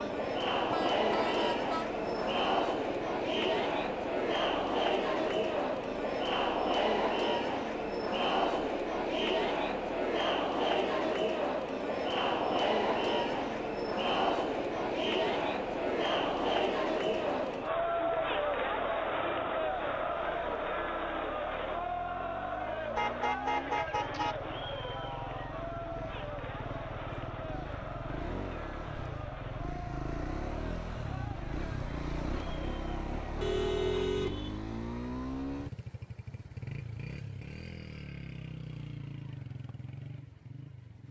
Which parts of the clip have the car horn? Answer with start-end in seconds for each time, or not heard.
0.7-2.4, 22.9-24.4, 33.4-34.6.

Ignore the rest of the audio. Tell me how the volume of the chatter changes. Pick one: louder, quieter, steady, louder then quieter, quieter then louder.
quieter.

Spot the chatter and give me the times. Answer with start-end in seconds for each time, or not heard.
0.0-34.1.